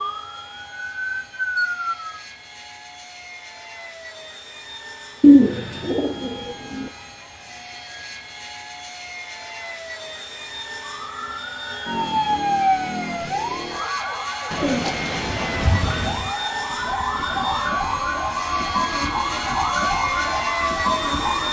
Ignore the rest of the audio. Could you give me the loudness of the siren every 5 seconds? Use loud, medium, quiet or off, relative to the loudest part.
loud, off, loud, loud, loud.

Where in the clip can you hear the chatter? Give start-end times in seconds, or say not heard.
not heard.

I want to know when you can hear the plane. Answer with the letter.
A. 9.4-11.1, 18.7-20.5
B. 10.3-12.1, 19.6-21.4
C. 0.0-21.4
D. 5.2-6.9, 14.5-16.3
C.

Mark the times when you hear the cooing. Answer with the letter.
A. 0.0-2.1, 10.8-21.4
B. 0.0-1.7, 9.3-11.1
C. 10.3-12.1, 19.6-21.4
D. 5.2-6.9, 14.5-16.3
D.